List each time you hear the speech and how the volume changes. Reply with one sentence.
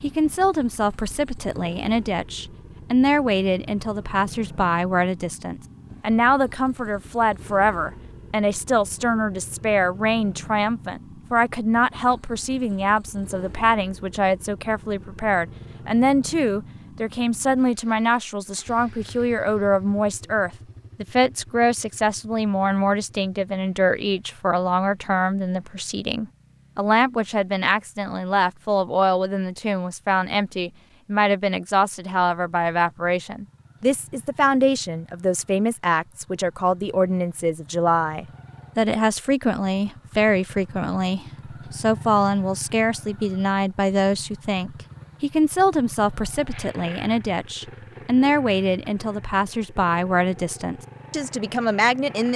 The speech can be heard from 0.0 to 52.3 s, at a steady volume.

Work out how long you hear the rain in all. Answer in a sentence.
You can't hear the rain here.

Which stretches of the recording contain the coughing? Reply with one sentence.
You can't hear the coughing here.